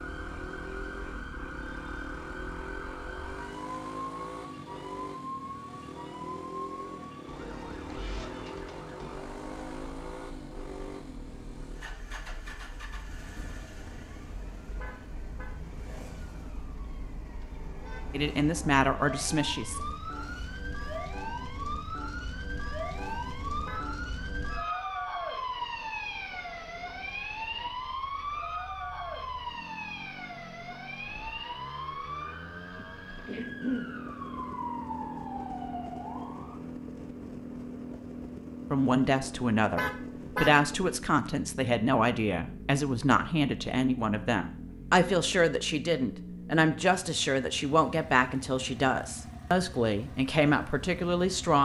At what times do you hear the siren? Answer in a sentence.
You can hear the siren from 0.0 to 36.6 s.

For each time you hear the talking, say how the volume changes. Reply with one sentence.
The talking can be heard briefly from 18.1 to 19.8 s; and from 38.7 to 51.6 s, at a steady volume.